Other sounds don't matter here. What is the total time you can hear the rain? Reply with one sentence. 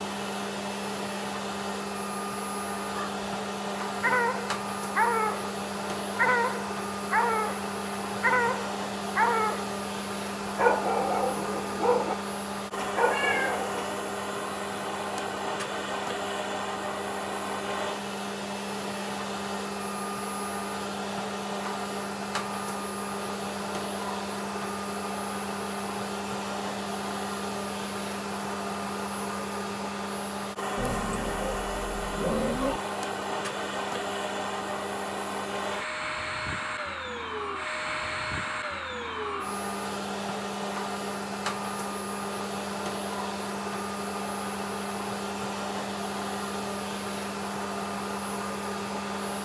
You can't hear the rain here.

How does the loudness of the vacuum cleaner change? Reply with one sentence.
The loudness of the vacuum cleaner stays about the same.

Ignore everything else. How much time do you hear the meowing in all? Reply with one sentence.
You can hear the meowing for 3 seconds altogether.